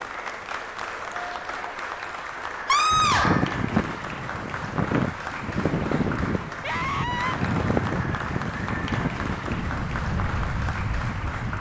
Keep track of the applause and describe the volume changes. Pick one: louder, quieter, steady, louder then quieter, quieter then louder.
steady.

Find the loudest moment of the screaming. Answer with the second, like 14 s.
3 s.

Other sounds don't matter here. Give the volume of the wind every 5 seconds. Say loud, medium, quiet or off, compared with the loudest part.
loud, loud, medium.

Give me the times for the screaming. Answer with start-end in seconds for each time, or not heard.
2.6-3.5, 6.6-7.3.